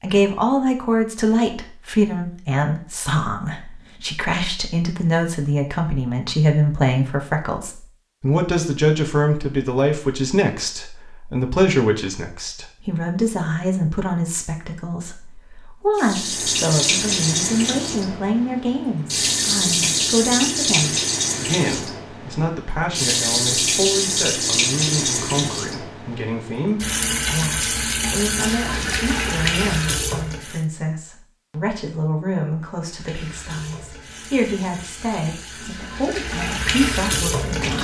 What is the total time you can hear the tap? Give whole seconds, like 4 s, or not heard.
20 s.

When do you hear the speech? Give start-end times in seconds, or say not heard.
0.0-37.7.